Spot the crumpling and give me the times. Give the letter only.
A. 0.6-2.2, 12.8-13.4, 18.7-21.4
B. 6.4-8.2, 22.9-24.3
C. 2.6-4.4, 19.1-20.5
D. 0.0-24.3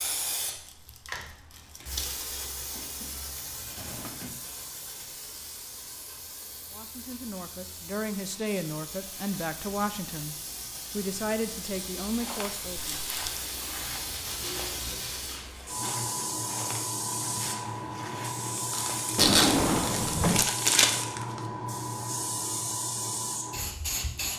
A.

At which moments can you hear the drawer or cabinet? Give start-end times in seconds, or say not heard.
2.6-4.4, 19.1-20.5.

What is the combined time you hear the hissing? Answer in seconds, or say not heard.
24 s.